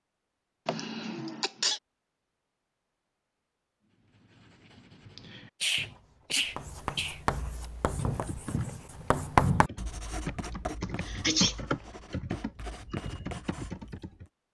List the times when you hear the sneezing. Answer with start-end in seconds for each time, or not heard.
0.7-1.8, 5.6-7.2, 10.8-11.6.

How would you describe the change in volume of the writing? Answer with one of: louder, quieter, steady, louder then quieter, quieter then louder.
louder then quieter.